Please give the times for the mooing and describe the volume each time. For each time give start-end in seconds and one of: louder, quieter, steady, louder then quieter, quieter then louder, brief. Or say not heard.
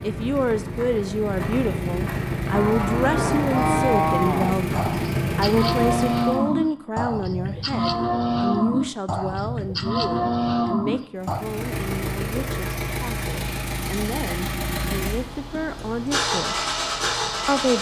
2.5-11.4 steady.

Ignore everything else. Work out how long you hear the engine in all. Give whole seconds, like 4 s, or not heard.
13 s.